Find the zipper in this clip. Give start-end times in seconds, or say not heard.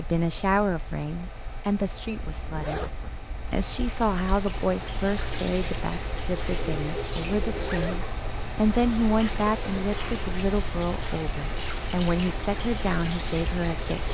2.1-3.6, 7.5-8.1.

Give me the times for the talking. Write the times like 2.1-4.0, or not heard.
0.0-2.9, 3.5-14.1.